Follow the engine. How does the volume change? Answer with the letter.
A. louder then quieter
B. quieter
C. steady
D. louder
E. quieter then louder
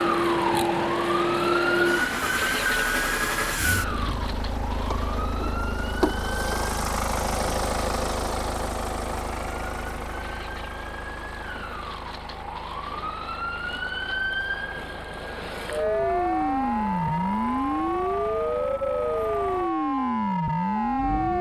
B.